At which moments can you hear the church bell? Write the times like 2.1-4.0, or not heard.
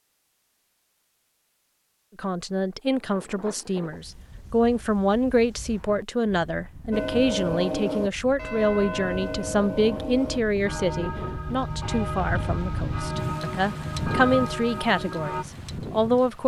6.9-15.4.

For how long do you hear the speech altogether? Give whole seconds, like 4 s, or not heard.
14 s.